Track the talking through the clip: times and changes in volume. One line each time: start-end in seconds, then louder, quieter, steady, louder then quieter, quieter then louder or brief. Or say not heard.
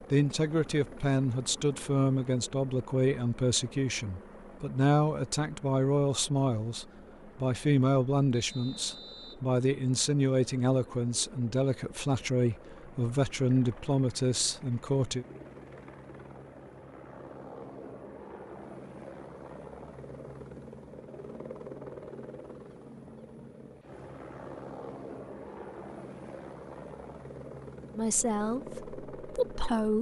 0.1-15.2 steady
27.9-29.9 brief.